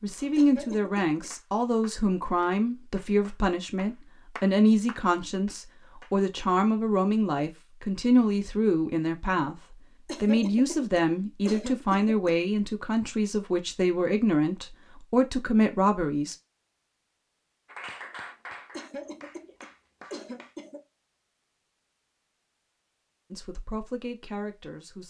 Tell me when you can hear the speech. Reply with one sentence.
You can hear the speech from 0.0 to 9.6 s, from 10.2 to 16.4 s and from 23.3 to 25.0 s.